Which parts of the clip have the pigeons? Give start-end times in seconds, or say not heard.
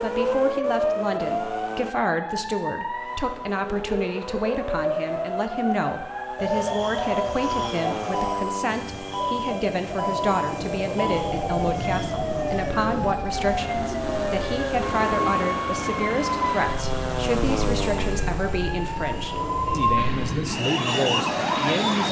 6.3-15.5.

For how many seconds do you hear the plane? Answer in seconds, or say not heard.
22 s.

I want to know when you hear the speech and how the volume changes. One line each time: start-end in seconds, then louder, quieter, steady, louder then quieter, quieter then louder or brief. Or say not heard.
0.0-22.0 steady.